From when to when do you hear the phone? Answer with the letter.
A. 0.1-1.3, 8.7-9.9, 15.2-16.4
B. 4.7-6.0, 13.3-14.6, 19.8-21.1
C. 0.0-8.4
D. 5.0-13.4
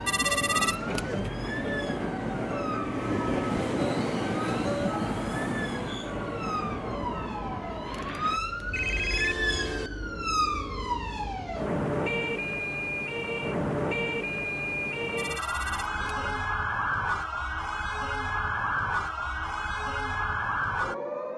A.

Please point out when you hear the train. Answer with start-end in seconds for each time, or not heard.
0.0-8.4.